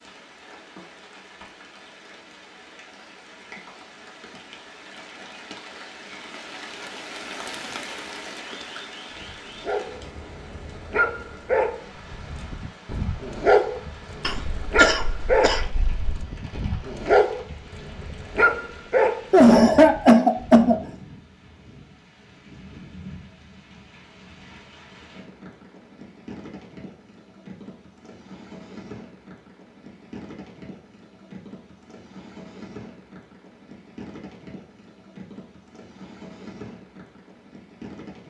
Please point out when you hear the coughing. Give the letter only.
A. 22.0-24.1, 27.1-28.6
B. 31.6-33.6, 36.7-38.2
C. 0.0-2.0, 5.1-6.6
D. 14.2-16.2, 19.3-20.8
D.